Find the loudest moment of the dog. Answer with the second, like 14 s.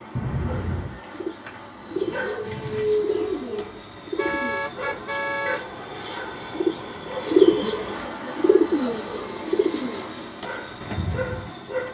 3 s.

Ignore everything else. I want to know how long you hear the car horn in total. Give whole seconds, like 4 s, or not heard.
3 s.